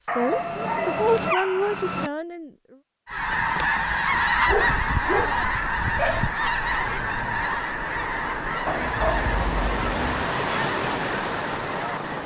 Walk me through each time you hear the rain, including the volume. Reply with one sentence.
The rain can be heard from 3.1 to 12.2 s, getting louder.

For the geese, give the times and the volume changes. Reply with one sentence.
You can hear the geese from 3.0 to 12.2 s, getting quieter.